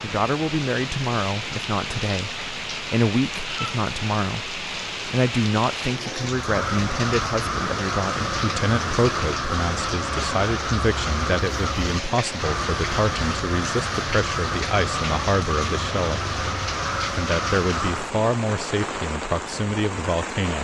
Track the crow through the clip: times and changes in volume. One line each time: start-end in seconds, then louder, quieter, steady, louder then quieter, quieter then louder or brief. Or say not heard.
6.2-18.1 steady.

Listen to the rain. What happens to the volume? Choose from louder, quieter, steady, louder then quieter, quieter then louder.
steady.